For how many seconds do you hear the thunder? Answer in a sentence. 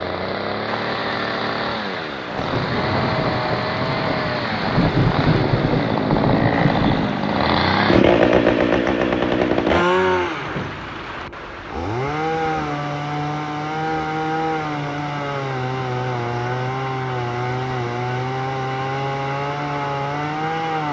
The thunder can be heard for 5 seconds in total.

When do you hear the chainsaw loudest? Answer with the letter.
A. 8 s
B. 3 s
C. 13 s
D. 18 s
A.